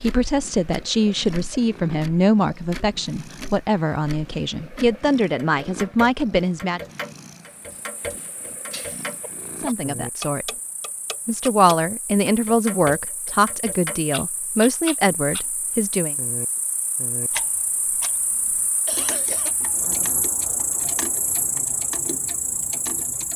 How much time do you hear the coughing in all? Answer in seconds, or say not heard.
2 s.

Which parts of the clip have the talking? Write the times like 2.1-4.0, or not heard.
0.0-6.8, 9.6-10.5, 11.2-16.1.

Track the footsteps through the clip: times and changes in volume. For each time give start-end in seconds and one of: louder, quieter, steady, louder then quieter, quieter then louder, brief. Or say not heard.
not heard.